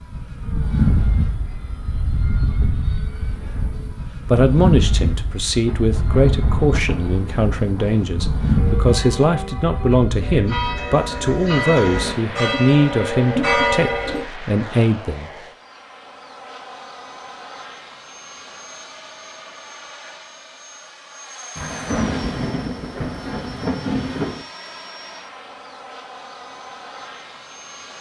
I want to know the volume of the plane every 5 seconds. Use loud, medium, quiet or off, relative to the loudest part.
loud, loud, medium, quiet, quiet, quiet.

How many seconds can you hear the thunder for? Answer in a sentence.
The thunder can be heard for 6 seconds in total.